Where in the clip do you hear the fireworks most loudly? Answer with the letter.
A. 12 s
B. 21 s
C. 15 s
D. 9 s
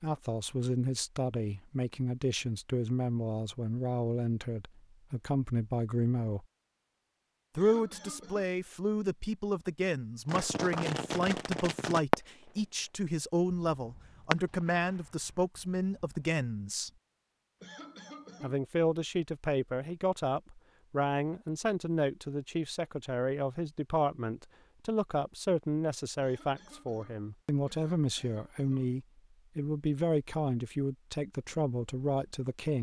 A.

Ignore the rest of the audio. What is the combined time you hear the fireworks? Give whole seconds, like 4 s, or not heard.
5 s.